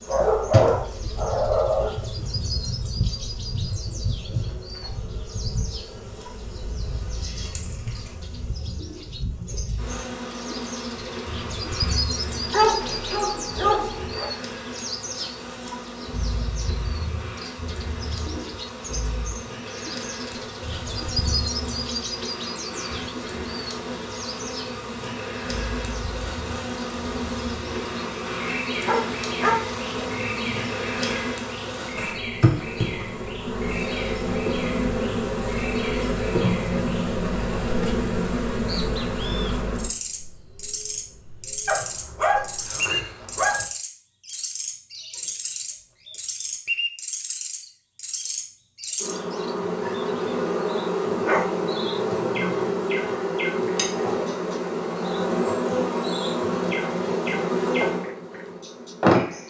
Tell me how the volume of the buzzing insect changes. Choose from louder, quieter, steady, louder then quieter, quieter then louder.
louder.